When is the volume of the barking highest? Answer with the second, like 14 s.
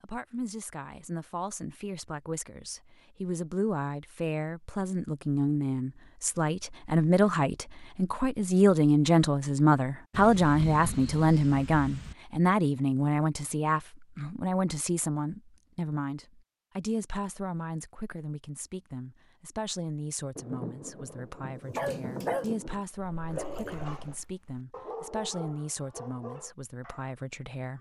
22 s.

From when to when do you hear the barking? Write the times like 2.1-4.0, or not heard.
21.7-27.1.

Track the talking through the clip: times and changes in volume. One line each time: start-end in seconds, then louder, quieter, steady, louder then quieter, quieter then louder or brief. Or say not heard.
0.0-27.7 louder then quieter.